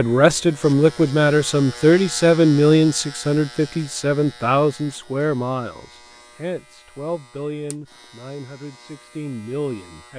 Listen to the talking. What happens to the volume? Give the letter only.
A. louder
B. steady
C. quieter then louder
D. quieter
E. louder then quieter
D.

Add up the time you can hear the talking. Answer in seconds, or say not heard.
10 s.